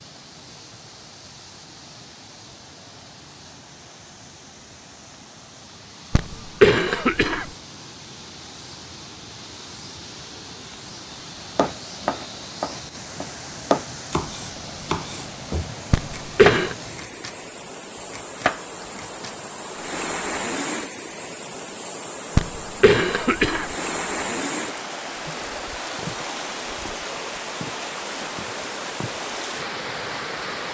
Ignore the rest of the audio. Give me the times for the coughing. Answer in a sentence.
The coughing can be heard from 6.1 to 7.5 s, from 15.9 to 16.8 s and from 22.4 to 23.7 s.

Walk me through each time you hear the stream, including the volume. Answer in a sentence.
The stream can be heard from 0.0 to 30.6 s, getting louder.